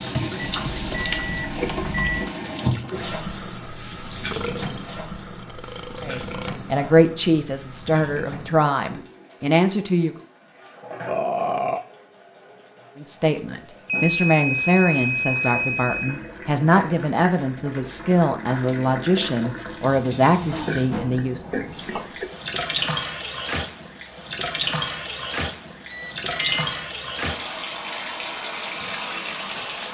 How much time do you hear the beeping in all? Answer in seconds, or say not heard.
5 s.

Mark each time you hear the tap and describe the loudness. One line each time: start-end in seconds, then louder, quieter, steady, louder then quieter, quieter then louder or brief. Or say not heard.
0.0-29.8 quieter then louder.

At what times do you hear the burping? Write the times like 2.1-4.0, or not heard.
4.2-6.6, 11.1-11.8, 20.4-22.3.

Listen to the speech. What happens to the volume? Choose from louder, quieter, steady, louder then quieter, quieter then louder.
steady.